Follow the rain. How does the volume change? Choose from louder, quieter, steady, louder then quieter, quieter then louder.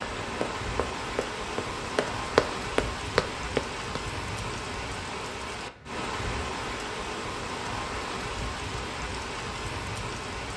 steady.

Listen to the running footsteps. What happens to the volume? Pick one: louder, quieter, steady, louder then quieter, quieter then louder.
louder.